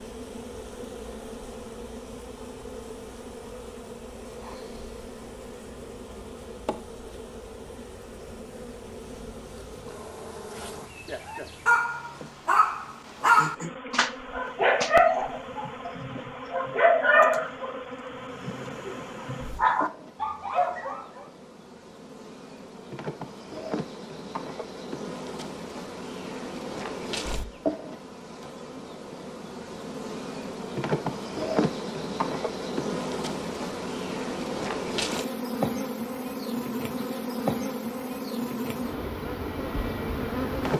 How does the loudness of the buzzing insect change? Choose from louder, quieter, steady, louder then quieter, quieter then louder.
louder.